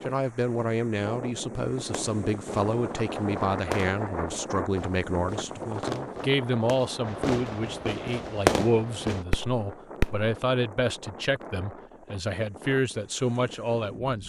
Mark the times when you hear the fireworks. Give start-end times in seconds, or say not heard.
1.9-10.3.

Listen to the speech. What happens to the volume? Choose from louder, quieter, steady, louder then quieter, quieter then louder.
steady.